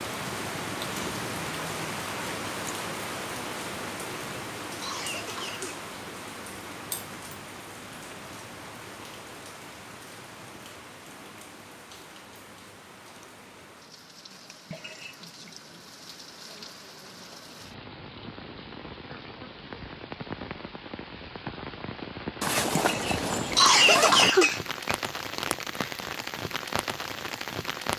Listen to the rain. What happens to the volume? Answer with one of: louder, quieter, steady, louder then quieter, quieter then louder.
quieter then louder.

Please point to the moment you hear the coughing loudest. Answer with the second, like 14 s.
24 s.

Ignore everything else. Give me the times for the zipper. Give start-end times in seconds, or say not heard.
22.4-24.3.